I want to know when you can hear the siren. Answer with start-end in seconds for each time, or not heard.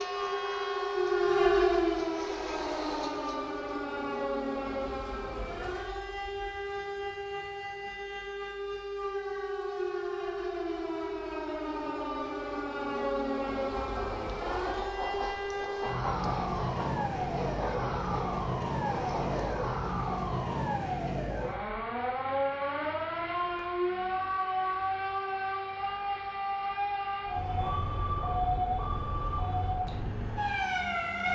0.0-31.2.